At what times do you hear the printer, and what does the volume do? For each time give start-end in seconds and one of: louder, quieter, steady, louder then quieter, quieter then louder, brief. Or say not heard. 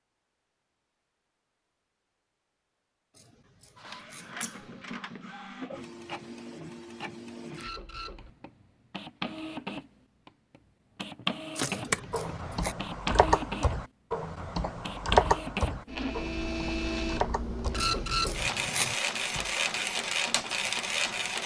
3.8-21.4 louder.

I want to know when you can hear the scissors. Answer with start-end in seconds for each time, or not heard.
4.1-4.5, 11.7-12.8, 17.8-18.9.